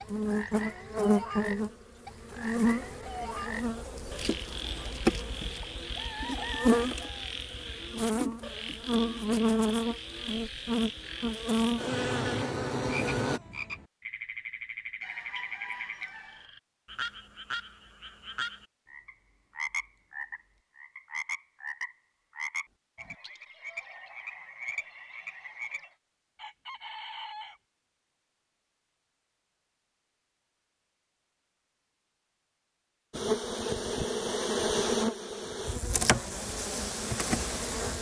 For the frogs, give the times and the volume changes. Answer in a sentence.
You can hear the frogs from 0.0 to 25.9 s, at a steady volume.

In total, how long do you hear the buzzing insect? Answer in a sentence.
The buzzing insect can be heard for 18 seconds in total.